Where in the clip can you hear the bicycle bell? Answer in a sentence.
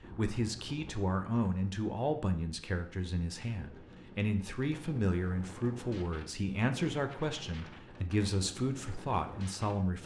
The bicycle bell can't be heard in this clip.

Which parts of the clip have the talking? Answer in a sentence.
The talking can be heard from 0.1 to 10.0 s.